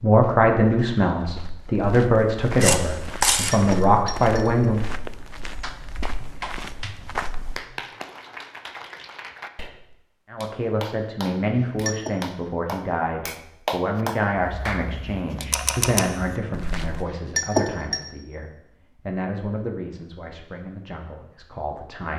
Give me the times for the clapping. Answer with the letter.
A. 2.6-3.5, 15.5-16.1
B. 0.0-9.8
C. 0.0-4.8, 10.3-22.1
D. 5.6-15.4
D.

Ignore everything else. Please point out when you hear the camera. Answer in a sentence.
You can hear the camera from 2.6 to 3.5 s and from 15.5 to 16.1 s.